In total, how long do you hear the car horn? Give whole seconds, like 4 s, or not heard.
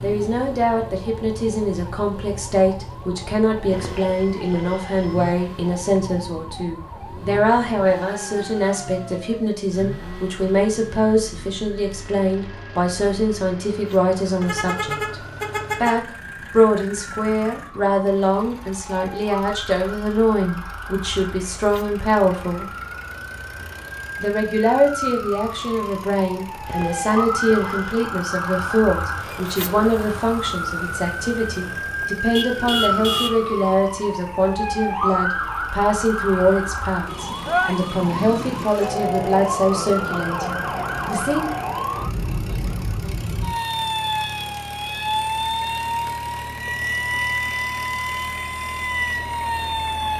3 s.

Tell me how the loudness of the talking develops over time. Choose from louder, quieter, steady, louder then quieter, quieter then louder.
steady.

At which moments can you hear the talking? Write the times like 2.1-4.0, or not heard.
0.0-22.7, 24.2-41.5.